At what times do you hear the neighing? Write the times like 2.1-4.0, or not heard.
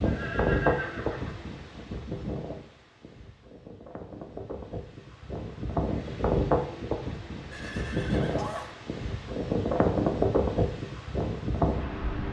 0.1-1.4, 7.5-8.8.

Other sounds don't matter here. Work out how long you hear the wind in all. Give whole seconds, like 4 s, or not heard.
12 s.